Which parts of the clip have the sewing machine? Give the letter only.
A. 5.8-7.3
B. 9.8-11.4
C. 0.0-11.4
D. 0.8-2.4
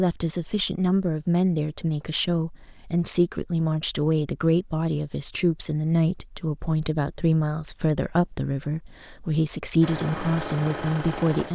B.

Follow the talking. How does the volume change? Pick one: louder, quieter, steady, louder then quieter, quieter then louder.
steady.